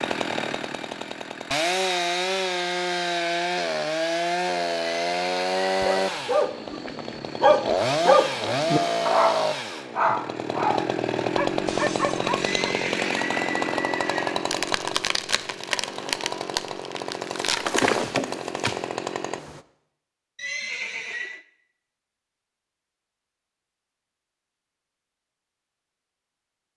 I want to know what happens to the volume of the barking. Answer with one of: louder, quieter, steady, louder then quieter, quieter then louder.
louder then quieter.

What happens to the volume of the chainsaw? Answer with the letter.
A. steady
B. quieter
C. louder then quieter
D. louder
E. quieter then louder
A.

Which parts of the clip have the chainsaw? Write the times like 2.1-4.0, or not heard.
0.0-19.6.